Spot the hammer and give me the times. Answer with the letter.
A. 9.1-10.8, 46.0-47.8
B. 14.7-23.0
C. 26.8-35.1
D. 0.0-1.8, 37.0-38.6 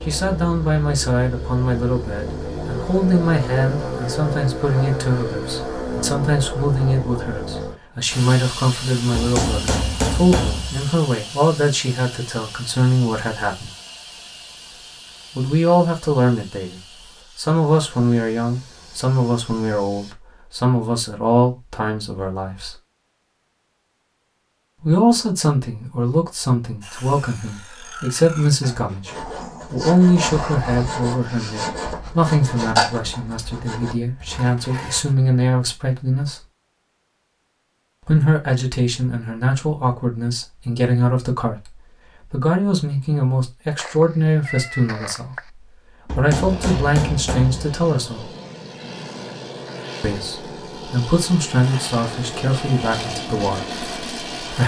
A.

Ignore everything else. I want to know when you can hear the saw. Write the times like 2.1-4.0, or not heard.
26.8-35.1.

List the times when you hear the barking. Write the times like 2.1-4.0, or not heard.
not heard.